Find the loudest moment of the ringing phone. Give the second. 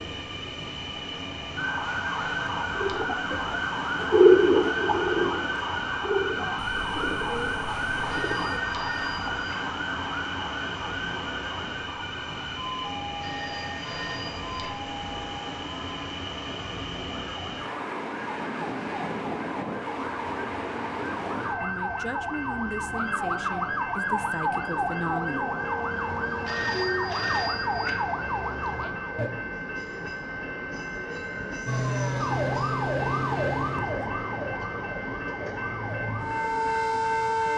27 s.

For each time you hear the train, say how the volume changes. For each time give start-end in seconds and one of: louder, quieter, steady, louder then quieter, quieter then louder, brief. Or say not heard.
0.0-37.5 steady.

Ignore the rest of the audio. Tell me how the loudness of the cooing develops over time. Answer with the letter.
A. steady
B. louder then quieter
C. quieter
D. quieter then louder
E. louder
B.